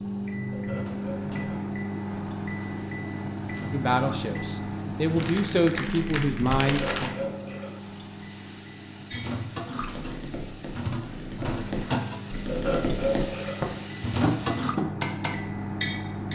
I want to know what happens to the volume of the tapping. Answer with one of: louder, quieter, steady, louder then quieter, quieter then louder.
louder.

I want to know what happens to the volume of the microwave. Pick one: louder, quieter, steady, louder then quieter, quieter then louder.
quieter then louder.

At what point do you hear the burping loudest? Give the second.
13 s.